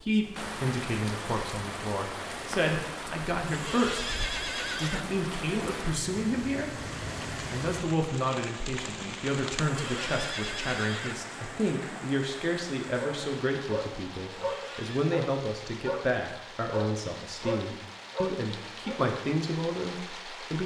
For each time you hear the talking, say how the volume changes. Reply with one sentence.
The talking can be heard from 0.0 to 20.6 s, at a steady volume.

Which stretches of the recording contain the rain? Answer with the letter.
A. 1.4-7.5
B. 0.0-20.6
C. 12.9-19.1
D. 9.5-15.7
B.